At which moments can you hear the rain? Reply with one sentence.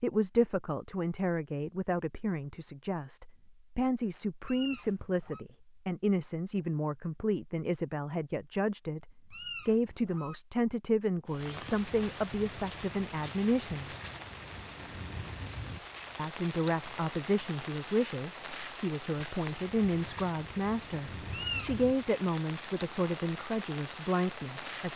The rain can be heard from 11.2 to 24.9 s.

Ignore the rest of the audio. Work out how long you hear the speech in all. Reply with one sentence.
You can hear the speech for 23 seconds altogether.